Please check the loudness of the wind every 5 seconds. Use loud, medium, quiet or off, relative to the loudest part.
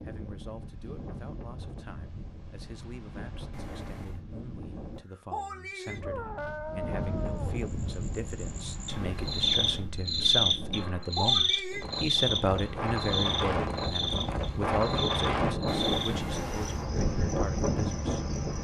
quiet, medium, loud, loud.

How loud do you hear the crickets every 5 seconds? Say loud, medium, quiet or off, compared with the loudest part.
off, loud, loud, medium.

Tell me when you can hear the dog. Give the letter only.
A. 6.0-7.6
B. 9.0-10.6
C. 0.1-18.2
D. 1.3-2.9
A.